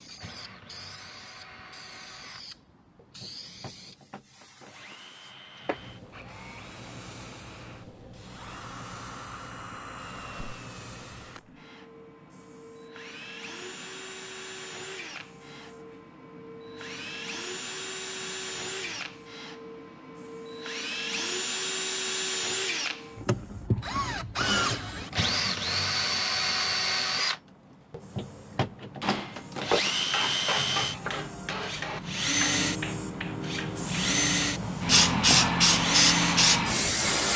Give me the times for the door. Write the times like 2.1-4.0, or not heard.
not heard.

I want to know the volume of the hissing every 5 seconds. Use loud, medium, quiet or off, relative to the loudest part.
quiet, quiet, quiet, quiet, quiet, quiet, medium, loud.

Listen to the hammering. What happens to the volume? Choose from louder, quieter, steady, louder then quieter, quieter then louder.
quieter.